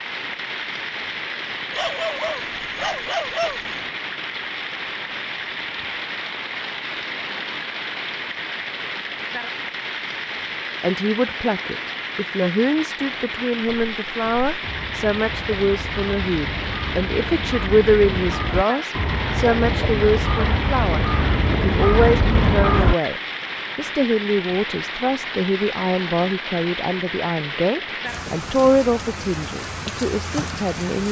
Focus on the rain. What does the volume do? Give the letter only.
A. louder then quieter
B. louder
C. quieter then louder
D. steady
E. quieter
D.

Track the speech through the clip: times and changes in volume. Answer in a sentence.
You can hear the speech from 10.8 to 31.0 s, at a steady volume.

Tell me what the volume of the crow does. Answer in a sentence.
The loudness of the crow goes up.